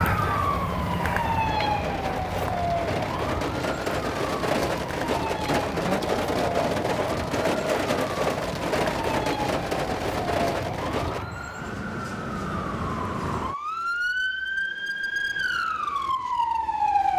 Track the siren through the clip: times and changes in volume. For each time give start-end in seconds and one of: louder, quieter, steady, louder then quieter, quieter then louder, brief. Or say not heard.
0.0-17.1 quieter then louder.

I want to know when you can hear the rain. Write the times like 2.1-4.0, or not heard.
0.1-11.2.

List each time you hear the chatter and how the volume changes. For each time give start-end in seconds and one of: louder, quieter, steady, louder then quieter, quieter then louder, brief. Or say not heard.
not heard.